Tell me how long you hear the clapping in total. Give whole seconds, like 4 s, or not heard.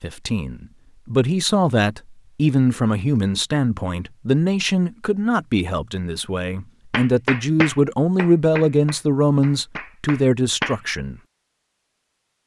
4 s.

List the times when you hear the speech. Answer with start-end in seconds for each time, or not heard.
0.0-11.2.